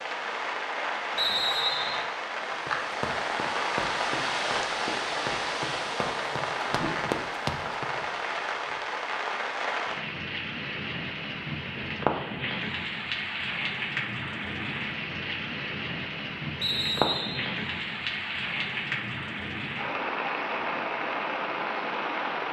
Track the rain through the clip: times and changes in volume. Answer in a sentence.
You can hear the rain from 0.0 to 22.4 s, at a steady volume.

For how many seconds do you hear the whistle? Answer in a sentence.
You can hear the whistle for 2 seconds altogether.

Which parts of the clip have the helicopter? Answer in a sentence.
You can't hear the helicopter here.